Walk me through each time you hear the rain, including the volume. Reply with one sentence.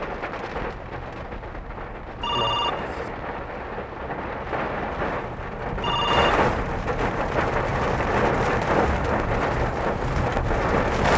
The rain can be heard from 0.0 to 11.1 s, getting louder.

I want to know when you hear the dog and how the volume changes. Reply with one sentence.
The dog can't be heard in this clip.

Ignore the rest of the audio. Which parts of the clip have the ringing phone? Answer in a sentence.
You can hear the ringing phone from 2.2 to 3.1 s and from 5.8 to 6.3 s.